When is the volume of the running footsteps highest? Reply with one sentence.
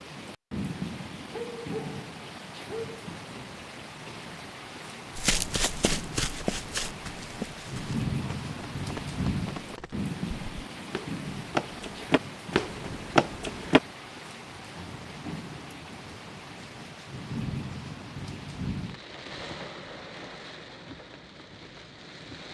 The loudest moment of the running footsteps is at 13 seconds.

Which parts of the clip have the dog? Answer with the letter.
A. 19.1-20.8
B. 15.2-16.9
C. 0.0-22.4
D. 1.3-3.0
D.